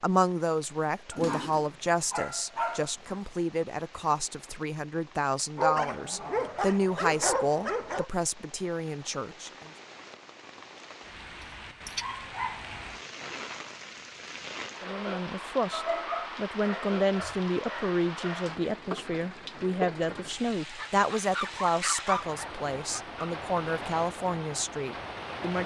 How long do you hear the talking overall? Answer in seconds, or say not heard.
20 s.